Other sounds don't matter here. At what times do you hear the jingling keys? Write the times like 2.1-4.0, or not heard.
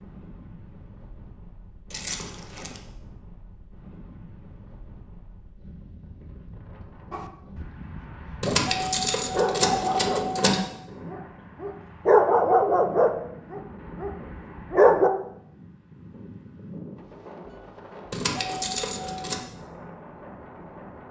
1.9-2.8, 8.4-10.7, 18.1-19.4.